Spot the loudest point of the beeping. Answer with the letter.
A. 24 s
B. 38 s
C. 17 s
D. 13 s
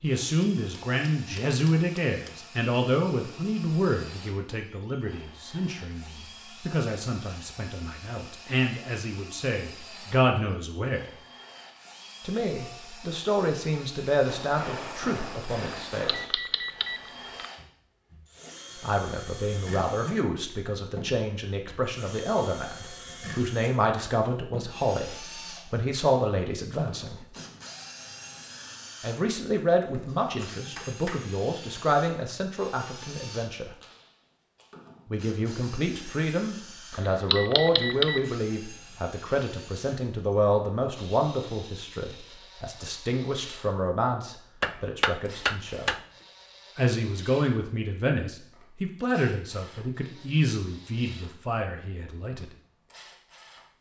B.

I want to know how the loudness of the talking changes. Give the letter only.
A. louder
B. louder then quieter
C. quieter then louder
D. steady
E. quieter
D.